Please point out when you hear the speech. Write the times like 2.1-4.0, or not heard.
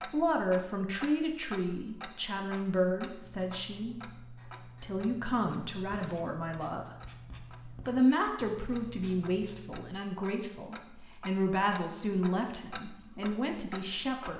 0.1-7.0, 7.8-14.3.